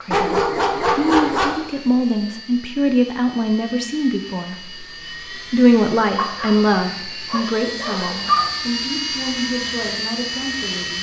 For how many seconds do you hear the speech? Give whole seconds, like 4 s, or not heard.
10 s.